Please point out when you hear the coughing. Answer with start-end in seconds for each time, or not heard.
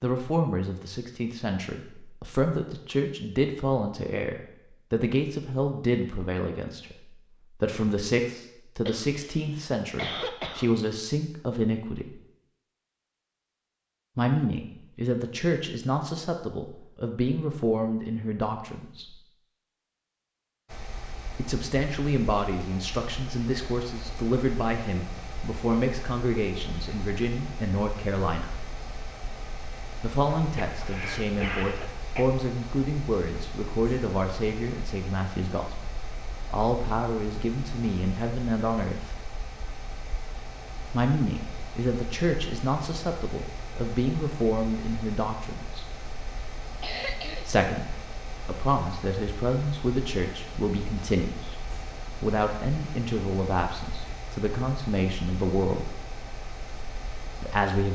8.8-10.8, 30.4-32.3, 46.8-47.5.